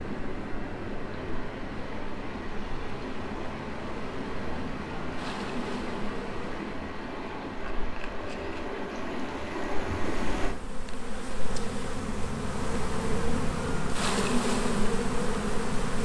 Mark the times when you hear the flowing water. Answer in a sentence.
You can hear the flowing water from 0.0 to 10.6 s.